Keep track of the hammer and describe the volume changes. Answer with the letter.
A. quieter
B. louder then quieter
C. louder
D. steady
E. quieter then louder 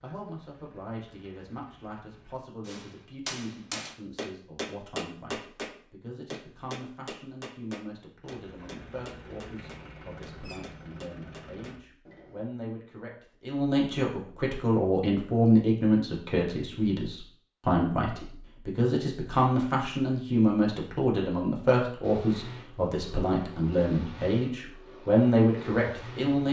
A.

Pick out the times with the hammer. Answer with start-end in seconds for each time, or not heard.
2.6-12.5.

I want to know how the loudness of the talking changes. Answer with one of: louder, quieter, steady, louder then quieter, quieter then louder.
louder.